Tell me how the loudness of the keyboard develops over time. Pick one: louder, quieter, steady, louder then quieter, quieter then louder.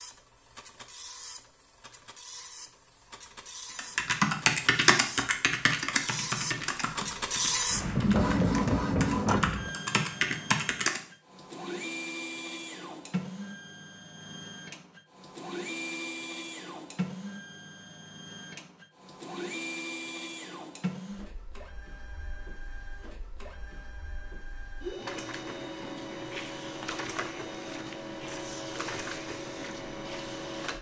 quieter then louder.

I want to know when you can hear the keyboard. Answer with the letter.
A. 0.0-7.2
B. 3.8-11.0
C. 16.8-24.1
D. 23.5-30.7
B.